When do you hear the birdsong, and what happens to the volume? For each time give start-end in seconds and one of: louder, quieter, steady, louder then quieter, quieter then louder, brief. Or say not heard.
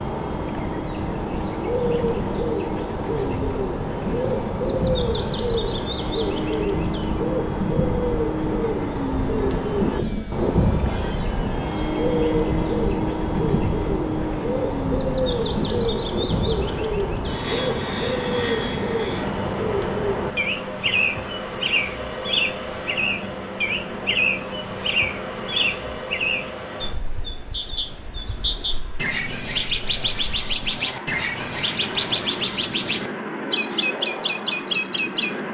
0.0-35.4 steady.